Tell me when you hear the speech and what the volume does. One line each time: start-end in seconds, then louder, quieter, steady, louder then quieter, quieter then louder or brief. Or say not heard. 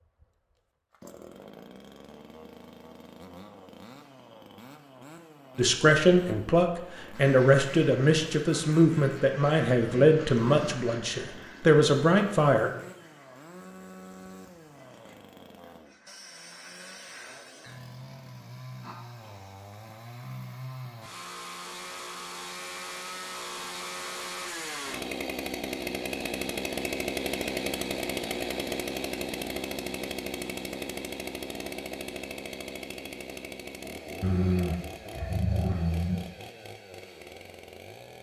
5.5-12.7 steady.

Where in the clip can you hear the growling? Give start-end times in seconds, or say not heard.
10.0-10.8, 18.8-19.5, 34.2-36.2.